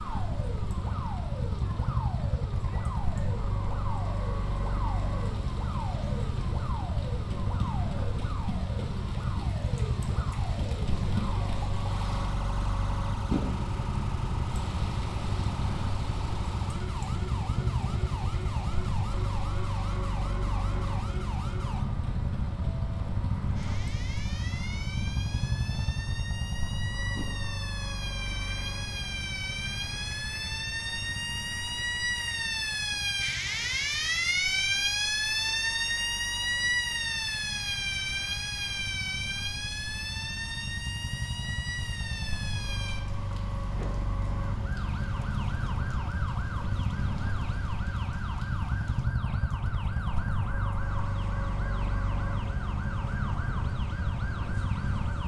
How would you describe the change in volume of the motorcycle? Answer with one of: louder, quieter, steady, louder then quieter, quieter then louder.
quieter then louder.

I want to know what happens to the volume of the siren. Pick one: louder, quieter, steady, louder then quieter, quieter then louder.
louder then quieter.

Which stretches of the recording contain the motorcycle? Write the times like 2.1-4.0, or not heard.
0.0-55.2.